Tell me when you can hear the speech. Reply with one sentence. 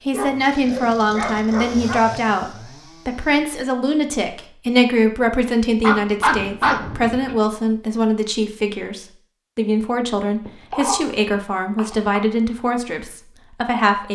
The speech can be heard from 0.1 to 14.0 s.